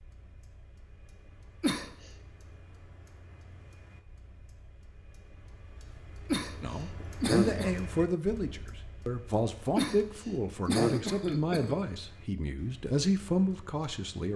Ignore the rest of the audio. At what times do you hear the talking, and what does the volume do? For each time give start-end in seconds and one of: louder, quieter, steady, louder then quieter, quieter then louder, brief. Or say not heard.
6.6-14.3 steady.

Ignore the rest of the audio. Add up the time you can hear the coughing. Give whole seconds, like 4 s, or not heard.
4 s.